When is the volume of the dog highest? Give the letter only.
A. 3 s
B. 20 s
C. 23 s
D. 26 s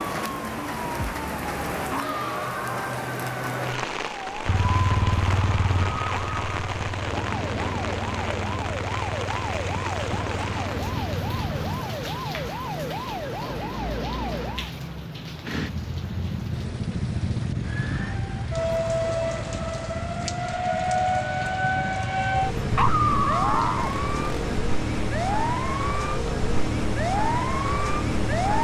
C.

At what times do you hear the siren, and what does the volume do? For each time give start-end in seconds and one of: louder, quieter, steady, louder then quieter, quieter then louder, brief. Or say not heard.
0.0-14.7 steady
17.6-28.5 steady.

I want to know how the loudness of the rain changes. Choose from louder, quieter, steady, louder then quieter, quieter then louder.
quieter.